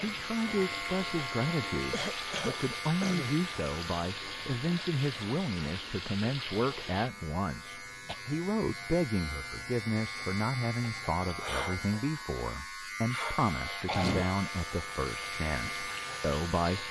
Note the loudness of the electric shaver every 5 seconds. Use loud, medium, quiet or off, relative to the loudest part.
loud, medium, loud, loud.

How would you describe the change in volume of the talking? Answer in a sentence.
The volume of the talking stays about the same.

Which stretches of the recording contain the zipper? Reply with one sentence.
The zipper can't be heard in this clip.